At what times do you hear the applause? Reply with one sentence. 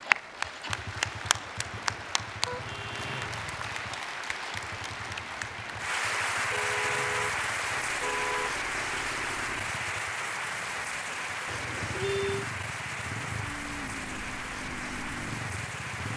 The applause can be heard from 0.0 to 16.1 s.